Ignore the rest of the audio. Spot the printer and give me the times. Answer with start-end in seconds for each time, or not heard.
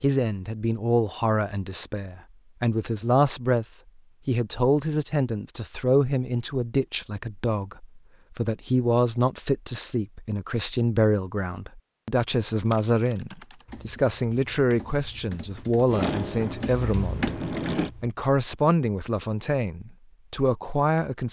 15.8-17.9.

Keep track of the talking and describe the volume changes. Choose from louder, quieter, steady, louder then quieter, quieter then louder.
steady.